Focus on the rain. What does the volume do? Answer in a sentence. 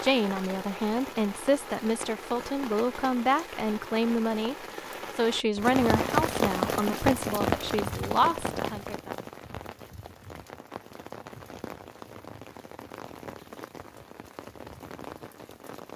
The volume of the rain goes up, then down.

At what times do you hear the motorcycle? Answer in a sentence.
The motorcycle can't be heard in this clip.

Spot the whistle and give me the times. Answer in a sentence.
You can't hear the whistle here.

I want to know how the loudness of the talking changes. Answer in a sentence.
The loudness of the talking stays about the same.